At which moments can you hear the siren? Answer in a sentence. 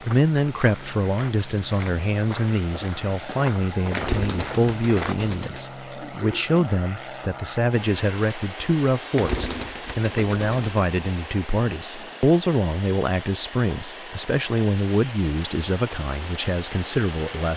The siren can't be heard in this clip.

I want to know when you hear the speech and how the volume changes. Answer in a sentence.
You can hear the speech from 0.0 to 17.5 s, at a steady volume.